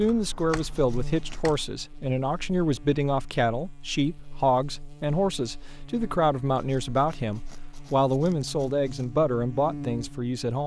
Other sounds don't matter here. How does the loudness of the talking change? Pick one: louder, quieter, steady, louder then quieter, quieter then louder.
steady.